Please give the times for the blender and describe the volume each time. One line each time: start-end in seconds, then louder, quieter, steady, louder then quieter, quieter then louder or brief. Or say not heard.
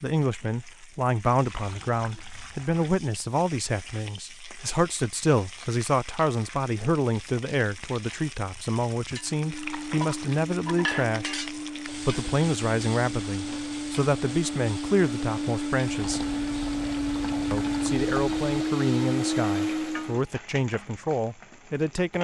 9.4-20.2 louder.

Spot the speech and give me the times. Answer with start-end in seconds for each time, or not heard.
0.0-16.3, 17.5-22.1.